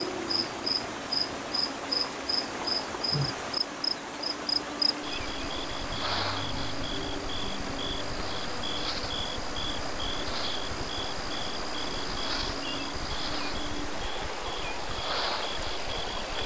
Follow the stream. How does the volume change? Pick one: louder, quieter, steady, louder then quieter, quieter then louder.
steady.